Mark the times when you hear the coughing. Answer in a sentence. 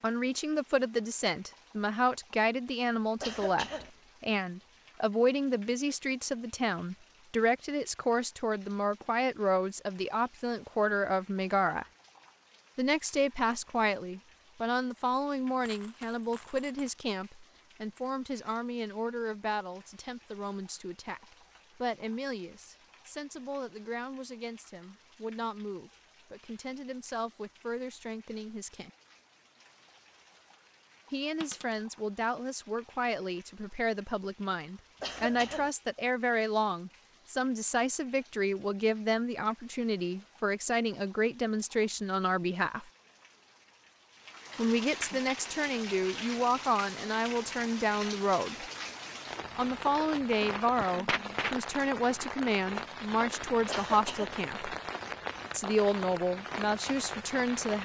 You can hear the coughing from 3.2 to 3.9 s, from 35.0 to 35.7 s and from 53.6 to 54.4 s.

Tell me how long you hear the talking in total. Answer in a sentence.
The talking can be heard for 51 seconds in total.